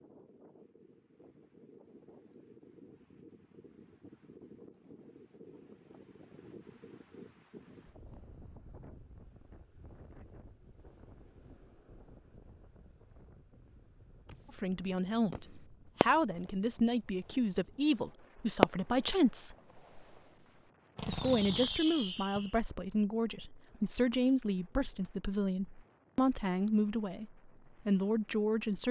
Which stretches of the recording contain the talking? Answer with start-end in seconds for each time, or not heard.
14.5-19.6, 21.0-28.8.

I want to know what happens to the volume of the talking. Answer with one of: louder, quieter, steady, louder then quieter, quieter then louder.
steady.